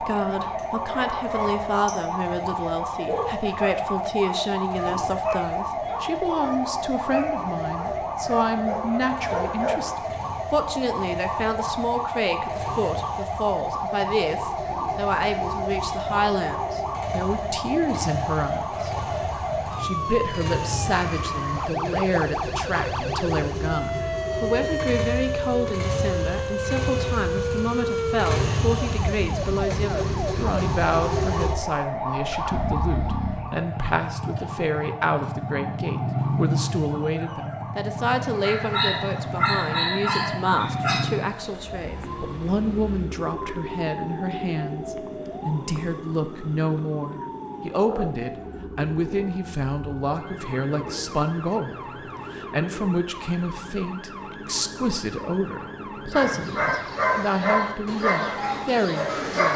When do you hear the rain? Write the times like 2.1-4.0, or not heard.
not heard.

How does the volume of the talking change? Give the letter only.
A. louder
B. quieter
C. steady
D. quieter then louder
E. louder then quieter
C.